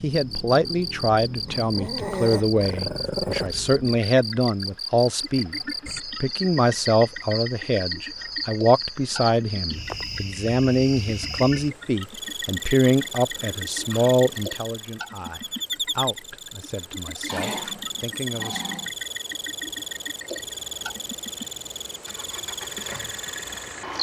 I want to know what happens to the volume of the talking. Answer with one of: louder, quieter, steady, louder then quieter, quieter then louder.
quieter.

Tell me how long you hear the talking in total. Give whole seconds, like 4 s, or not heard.
19 s.